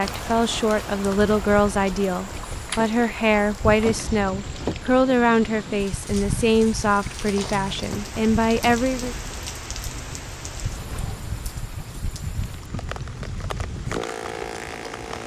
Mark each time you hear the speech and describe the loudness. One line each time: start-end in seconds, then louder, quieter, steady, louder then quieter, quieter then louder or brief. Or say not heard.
0.0-9.2 steady.